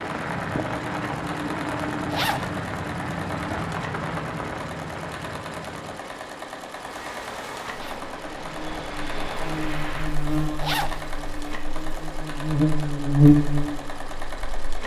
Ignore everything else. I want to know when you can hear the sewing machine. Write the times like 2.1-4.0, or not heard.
0.0-14.8.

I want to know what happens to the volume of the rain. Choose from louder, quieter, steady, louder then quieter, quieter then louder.
quieter then louder.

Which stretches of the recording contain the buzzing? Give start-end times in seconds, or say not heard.
6.8-14.8.